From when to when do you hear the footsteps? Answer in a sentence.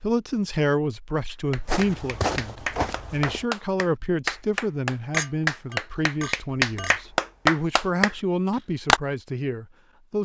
The footsteps can be heard from 1.6 to 3.5 s.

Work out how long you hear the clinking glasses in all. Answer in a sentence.
The clinking glasses can be heard for 2 seconds in total.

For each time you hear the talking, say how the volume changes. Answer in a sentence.
The talking can be heard from 0.0 to 10.2 s, at a steady volume.